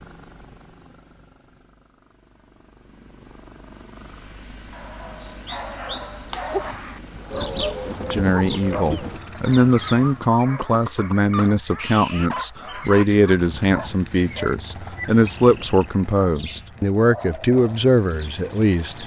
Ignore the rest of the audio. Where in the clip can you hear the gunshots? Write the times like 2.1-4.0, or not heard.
not heard.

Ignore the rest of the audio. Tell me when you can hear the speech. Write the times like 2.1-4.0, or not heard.
8.1-19.0.